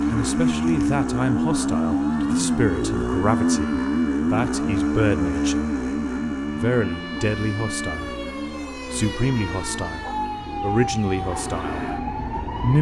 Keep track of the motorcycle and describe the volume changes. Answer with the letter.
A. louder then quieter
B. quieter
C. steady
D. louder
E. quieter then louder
B.